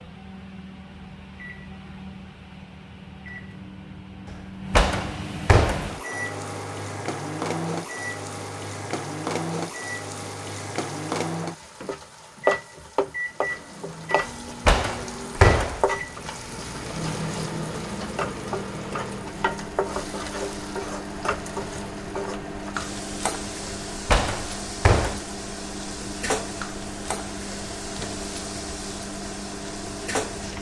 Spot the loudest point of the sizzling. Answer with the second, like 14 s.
13 s.